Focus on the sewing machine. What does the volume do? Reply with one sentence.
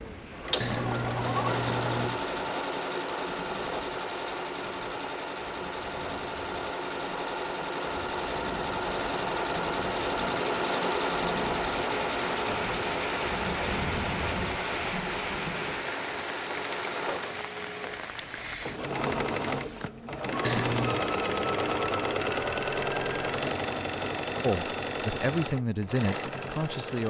The loudness of the sewing machine stays about the same.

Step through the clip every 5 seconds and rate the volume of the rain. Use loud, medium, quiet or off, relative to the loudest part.
medium, medium, loud, loud, off, off.